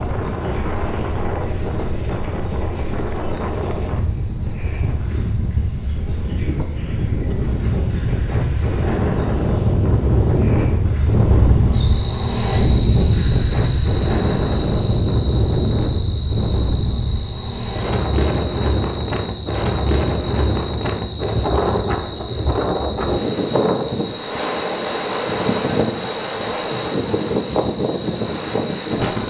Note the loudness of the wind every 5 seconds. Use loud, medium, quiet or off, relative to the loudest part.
medium, loud, loud, loud, loud, loud.